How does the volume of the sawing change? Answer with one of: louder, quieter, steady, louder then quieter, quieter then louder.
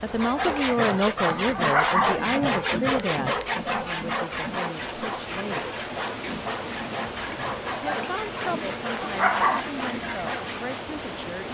quieter.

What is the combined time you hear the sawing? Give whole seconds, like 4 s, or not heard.
11 s.